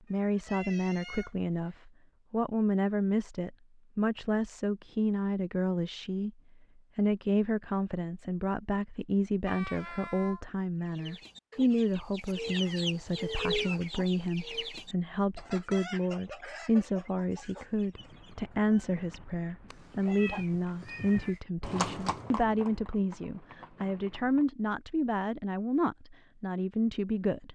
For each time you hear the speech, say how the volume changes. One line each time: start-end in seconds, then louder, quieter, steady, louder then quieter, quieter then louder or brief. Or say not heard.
0.1-6.3 steady
7.0-27.5 steady.